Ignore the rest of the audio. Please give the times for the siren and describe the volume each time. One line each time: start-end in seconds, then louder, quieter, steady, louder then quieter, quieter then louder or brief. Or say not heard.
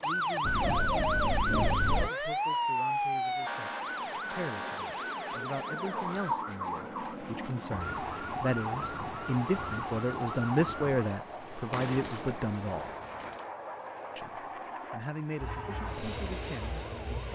0.0-11.1 quieter
15.4-17.3 brief.